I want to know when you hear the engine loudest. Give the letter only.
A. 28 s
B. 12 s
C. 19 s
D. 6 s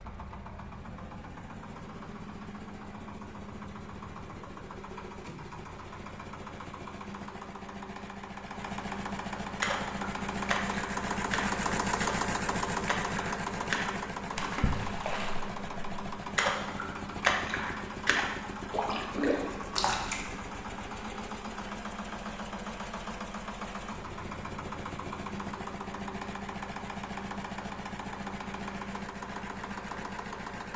B.